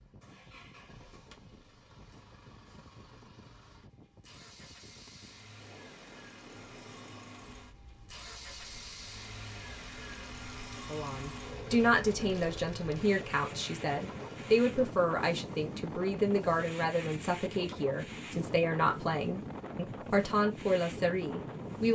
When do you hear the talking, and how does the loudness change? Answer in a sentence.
You can hear the talking from 10.9 to 21.9 s, at a steady volume.